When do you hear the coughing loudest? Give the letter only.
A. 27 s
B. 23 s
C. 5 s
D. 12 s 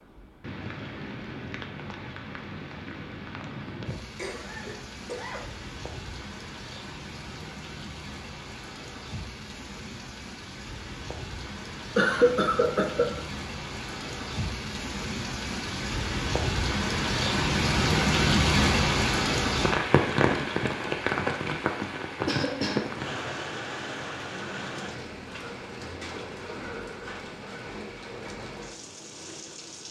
D.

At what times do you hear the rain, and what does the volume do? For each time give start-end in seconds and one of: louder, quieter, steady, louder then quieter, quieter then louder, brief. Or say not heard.
0.0-29.8 louder then quieter.